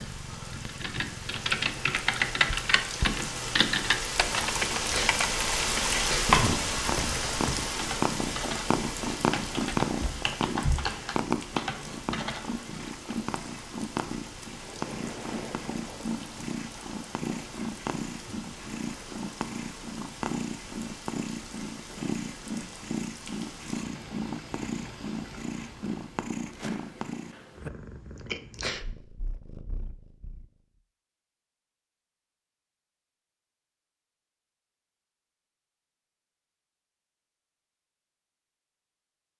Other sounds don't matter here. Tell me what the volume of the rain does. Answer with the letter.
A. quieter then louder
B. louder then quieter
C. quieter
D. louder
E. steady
C.